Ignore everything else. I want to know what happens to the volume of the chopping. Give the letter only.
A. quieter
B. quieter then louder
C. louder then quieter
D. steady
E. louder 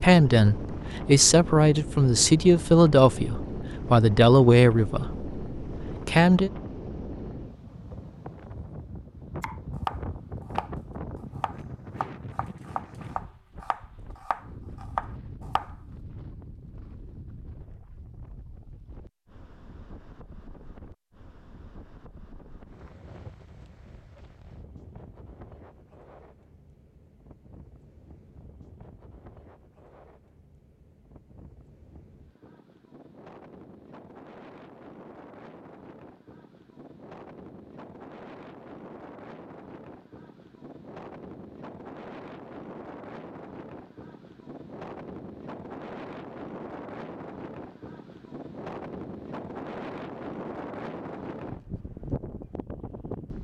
B.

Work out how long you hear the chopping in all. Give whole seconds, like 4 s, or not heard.
6 s.